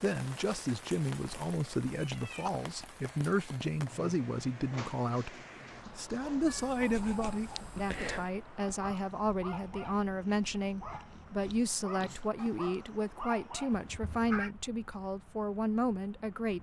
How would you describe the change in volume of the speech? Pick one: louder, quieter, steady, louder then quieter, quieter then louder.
steady.